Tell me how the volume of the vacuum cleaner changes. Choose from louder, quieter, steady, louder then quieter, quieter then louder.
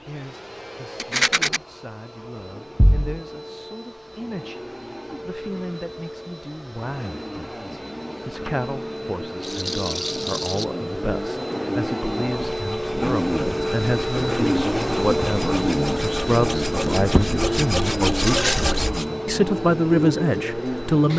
louder.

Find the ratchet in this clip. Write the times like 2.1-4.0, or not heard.
not heard.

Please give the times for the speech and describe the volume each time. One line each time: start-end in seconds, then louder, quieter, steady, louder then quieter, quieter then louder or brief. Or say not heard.
0.1-4.6 louder then quieter
5.2-21.1 louder.